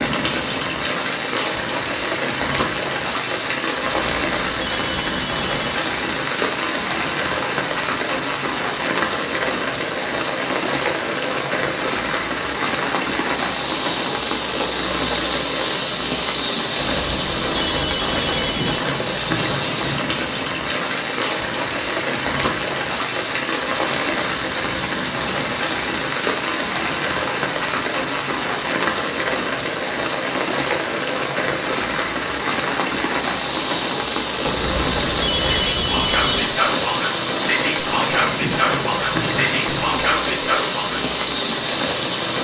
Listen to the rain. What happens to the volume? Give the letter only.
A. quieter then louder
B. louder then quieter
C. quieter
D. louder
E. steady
E.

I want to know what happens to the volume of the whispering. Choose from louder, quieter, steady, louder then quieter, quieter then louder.
steady.